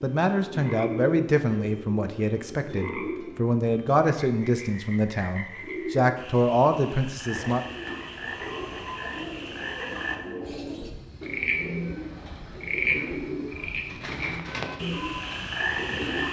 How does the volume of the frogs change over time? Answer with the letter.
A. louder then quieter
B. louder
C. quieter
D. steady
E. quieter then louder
B.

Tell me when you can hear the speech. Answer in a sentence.
You can hear the speech from 0.0 to 7.6 s.